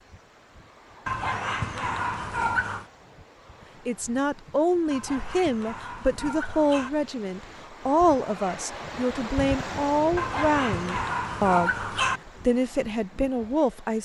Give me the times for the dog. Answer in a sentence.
You can hear the dog from 1.1 to 2.9 s, from 4.9 to 6.9 s and from 10.2 to 12.2 s.